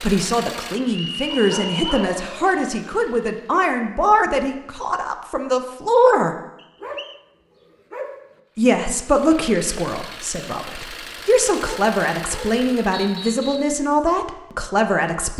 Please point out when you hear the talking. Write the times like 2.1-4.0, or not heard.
0.0-6.3, 8.6-15.3.